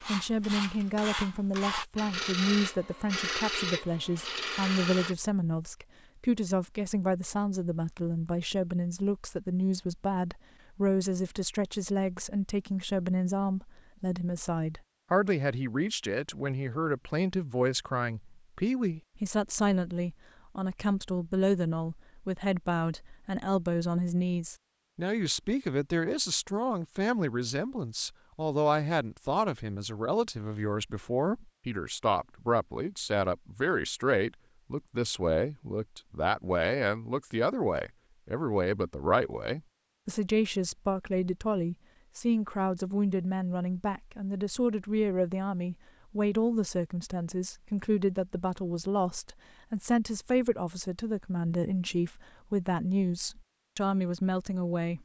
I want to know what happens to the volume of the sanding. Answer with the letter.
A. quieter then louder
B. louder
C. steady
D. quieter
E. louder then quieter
C.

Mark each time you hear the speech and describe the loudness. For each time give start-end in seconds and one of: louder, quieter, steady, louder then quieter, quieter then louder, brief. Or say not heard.
0.1-55.0 steady.